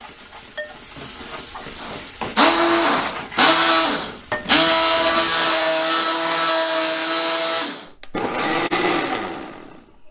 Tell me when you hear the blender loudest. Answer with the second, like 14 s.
5 s.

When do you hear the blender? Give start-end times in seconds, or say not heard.
1.8-10.0.